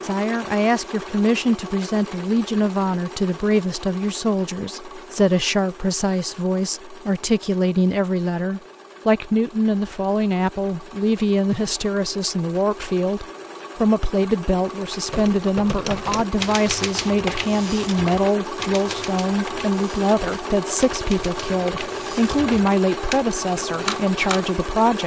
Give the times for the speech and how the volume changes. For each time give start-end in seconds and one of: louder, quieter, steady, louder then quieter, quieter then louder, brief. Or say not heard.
0.0-25.0 steady.